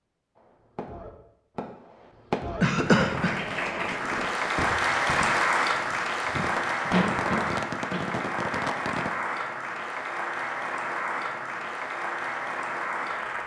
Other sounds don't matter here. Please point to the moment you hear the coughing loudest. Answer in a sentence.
The volume of the coughing peaks at 3 seconds.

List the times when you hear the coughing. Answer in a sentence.
The coughing can be heard from 2.6 to 3.4 s and from 6.9 to 8.2 s.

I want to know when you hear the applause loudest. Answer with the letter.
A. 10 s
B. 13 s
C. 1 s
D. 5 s
D.